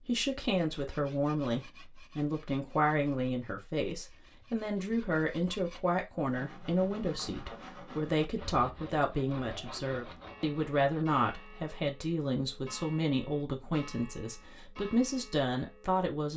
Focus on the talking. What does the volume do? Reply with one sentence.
The loudness of the talking stays about the same.